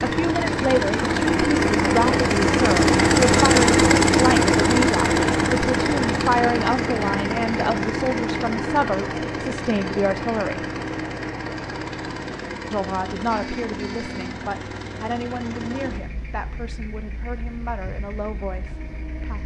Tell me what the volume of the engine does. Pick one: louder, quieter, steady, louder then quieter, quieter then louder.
quieter.